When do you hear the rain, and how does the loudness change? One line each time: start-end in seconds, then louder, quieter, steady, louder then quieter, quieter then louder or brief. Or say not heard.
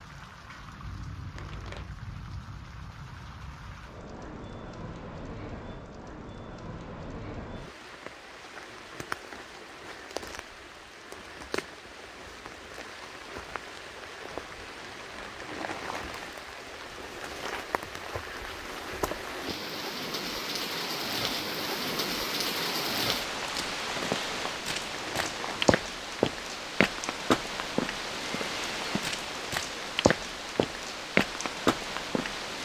0.0-32.5 louder.